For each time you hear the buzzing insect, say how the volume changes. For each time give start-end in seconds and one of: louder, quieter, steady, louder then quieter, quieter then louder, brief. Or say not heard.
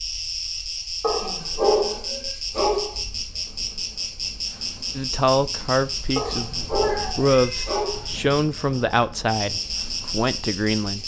0.0-11.0 steady.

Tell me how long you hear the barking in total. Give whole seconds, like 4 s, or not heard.
4 s.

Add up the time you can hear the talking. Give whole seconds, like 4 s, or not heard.
6 s.